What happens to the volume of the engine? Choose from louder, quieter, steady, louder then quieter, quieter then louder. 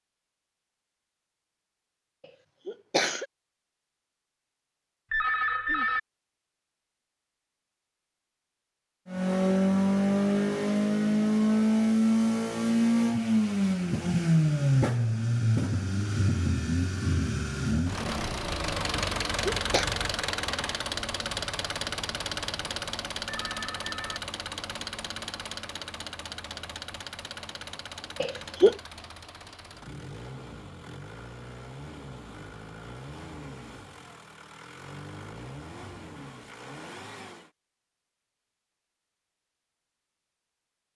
quieter.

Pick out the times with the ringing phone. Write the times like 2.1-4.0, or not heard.
5.1-6.0, 23.2-24.2.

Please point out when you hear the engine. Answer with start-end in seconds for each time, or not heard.
9.1-37.5.